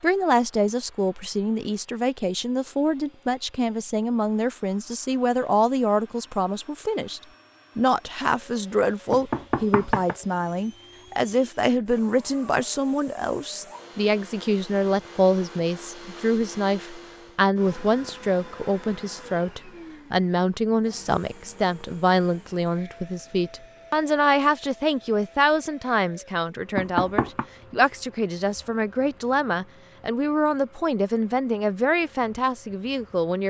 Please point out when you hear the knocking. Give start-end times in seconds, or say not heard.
9.1-10.2, 26.8-27.4.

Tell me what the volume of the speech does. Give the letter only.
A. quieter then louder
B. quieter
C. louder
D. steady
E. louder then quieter
D.